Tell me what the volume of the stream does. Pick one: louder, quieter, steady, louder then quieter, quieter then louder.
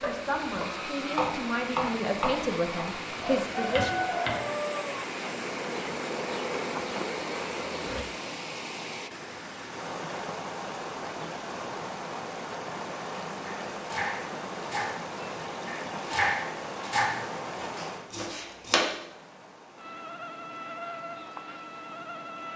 quieter.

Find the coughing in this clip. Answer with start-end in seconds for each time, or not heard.
not heard.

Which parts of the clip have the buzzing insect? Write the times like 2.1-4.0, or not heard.
3.0-8.1, 19.8-22.5.